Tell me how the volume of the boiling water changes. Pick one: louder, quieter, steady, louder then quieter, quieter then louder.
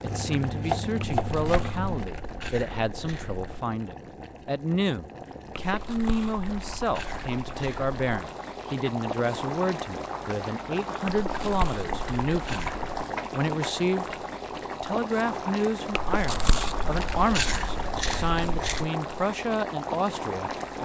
louder.